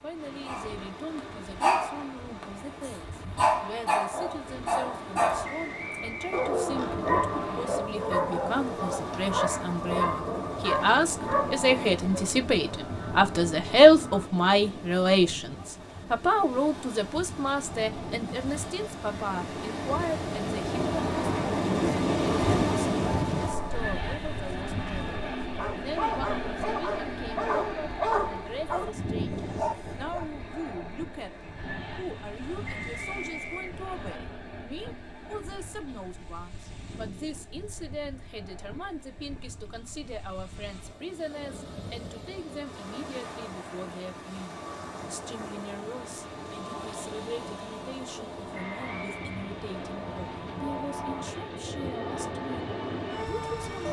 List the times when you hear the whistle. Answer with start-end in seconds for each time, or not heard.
5.4-7.0, 32.6-34.2, 48.5-49.5.